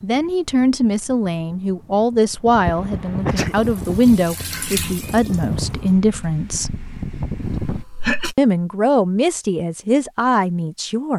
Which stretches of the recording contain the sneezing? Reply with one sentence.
The sneezing can be heard from 3.0 to 3.5 s and from 7.4 to 8.3 s.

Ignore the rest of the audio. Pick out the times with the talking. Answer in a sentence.
You can hear the talking from 0.0 to 6.8 s and from 8.3 to 11.1 s.